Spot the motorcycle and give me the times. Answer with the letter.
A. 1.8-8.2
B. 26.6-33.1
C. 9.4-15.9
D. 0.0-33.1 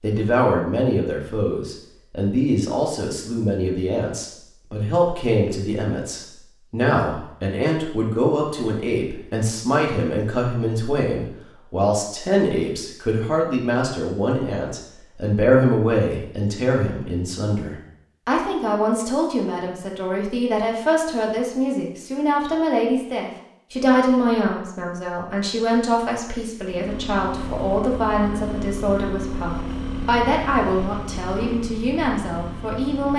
B.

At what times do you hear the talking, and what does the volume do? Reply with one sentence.
You can hear the talking from 0.0 to 33.1 s, at a steady volume.